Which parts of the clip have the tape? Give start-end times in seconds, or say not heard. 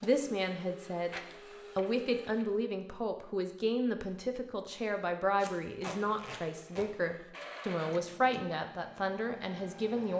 5.4-6.8.